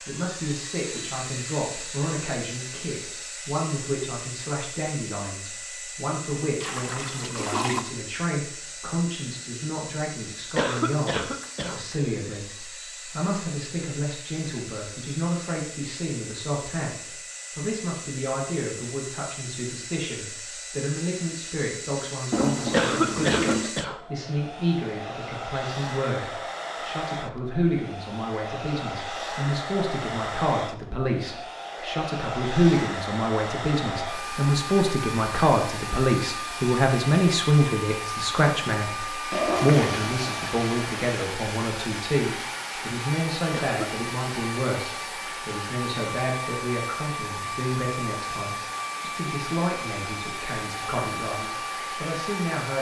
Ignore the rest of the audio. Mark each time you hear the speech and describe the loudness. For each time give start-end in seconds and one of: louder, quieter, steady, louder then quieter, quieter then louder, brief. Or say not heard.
0.1-52.7 louder then quieter.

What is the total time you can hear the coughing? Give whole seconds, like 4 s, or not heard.
3 s.